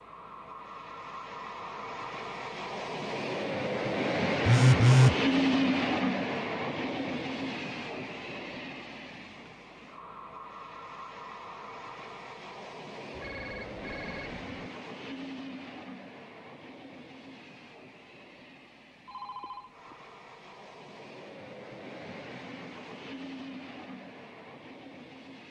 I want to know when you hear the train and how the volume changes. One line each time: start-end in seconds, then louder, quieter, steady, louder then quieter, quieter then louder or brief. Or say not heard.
0.0-25.4 quieter.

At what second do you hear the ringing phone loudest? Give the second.
5 s.